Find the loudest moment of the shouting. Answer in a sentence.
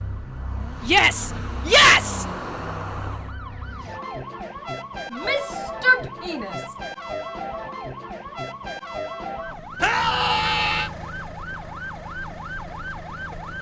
The loudest moment of the shouting is at 2 seconds.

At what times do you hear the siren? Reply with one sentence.
You can hear the siren from 0.0 to 13.5 s.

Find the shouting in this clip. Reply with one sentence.
You can hear the shouting from 0.8 to 2.2 s, from 5.1 to 6.7 s and from 9.8 to 10.9 s.